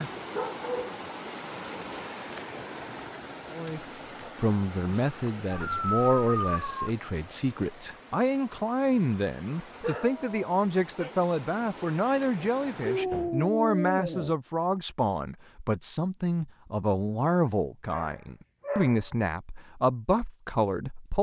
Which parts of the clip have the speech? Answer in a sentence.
The speech can be heard from 3.5 to 21.1 s.